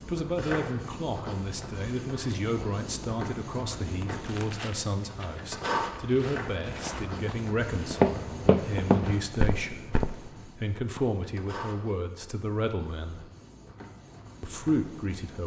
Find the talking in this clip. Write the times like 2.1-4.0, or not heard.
0.1-13.3, 14.4-15.4.